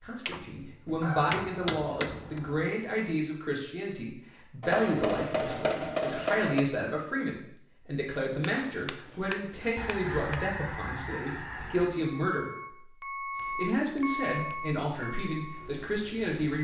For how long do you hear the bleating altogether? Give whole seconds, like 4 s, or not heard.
not heard.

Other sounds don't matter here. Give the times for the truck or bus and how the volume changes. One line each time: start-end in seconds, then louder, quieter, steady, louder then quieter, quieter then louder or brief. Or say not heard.
11.5-16.5 louder then quieter.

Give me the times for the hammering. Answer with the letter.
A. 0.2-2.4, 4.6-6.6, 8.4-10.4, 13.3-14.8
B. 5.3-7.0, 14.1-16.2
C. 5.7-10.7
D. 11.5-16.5
A.